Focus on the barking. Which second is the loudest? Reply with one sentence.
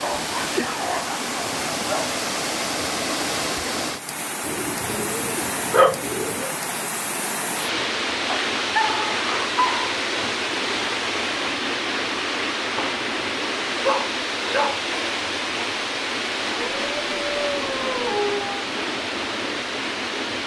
The volume of the barking peaks at 6 seconds.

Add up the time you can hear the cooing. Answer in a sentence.
The cooing can be heard for 2 seconds in total.